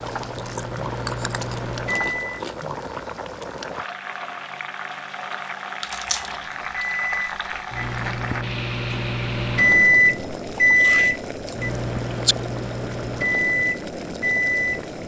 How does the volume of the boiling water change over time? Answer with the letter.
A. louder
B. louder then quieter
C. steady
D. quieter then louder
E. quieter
C.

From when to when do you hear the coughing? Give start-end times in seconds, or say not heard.
not heard.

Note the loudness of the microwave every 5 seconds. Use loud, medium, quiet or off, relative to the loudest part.
medium, loud, loud.